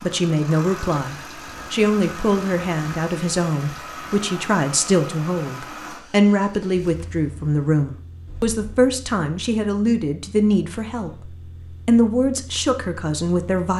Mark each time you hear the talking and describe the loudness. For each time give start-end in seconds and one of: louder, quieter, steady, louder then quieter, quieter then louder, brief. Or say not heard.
0.0-13.7 steady.